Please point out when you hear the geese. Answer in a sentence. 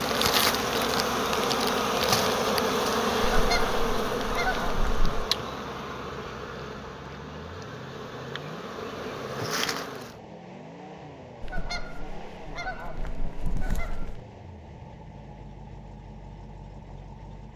You can hear the geese from 3.2 to 5.3 s and from 11.4 to 14.2 s.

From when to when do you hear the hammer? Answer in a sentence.
The hammer can't be heard in this clip.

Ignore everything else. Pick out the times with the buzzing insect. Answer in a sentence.
You can hear the buzzing insect from 0.0 to 10.2 s.